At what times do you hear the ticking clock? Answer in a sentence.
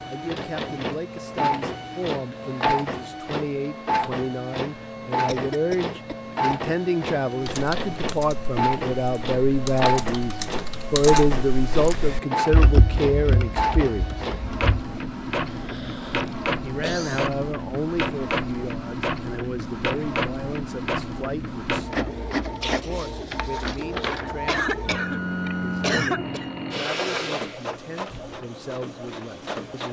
The ticking clock can't be heard in this clip.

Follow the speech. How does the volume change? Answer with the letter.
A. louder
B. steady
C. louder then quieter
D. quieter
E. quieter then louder
C.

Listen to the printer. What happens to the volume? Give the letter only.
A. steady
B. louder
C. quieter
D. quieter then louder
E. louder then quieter
A.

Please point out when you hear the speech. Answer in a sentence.
The speech can be heard from 0.0 to 14.2 s and from 16.6 to 29.8 s.